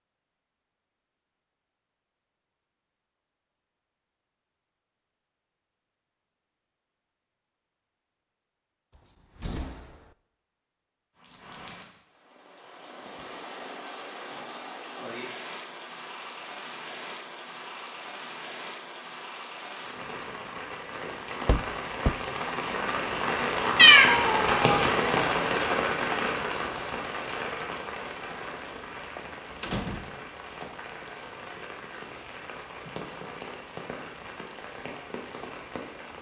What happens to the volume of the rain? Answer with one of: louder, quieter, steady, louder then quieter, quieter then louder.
louder then quieter.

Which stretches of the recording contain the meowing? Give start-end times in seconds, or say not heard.
23.8-24.8.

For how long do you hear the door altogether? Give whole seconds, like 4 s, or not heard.
3 s.